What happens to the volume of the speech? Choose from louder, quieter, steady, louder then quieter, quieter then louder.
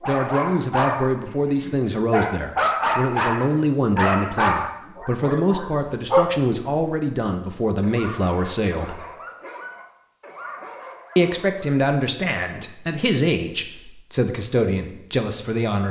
steady.